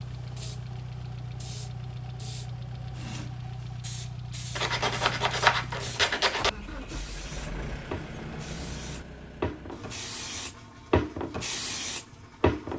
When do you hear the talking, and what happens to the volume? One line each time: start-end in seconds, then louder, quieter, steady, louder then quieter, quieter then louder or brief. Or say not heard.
not heard.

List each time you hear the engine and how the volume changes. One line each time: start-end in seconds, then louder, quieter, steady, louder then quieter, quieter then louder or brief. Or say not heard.
0.0-12.7 quieter.